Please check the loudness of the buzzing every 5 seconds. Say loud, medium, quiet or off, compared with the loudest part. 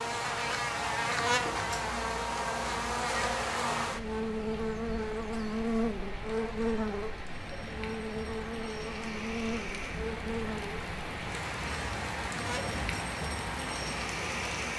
loud, loud, medium.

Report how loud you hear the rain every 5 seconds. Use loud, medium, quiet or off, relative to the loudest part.
medium, medium, loud.